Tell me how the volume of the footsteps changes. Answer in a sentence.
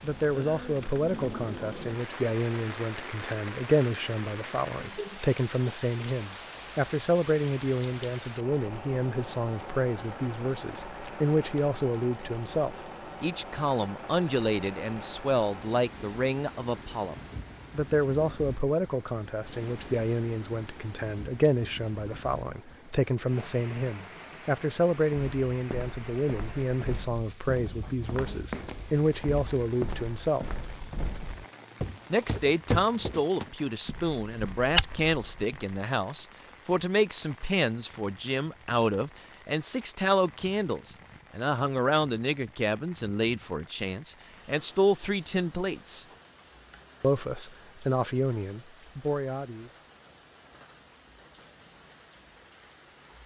The volume of the footsteps goes up.